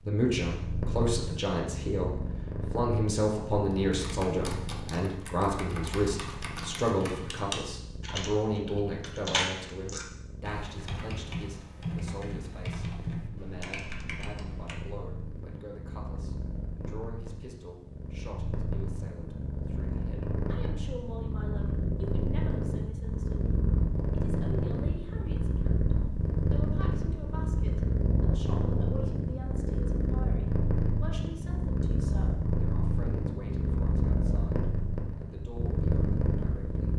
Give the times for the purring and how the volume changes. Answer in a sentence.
The purring can be heard from 0.0 to 36.9 s, getting quieter then louder.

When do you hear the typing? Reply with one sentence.
You can hear the typing from 3.7 to 14.8 s.